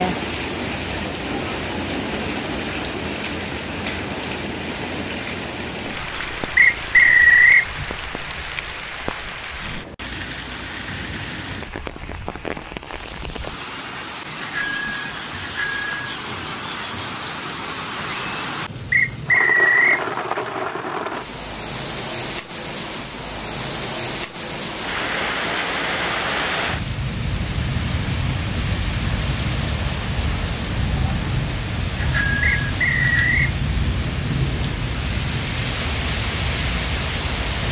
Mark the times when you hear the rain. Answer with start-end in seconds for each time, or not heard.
0.0-37.6.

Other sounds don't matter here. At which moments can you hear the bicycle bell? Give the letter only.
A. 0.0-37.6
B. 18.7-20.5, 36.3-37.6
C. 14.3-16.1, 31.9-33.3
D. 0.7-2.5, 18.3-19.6
C.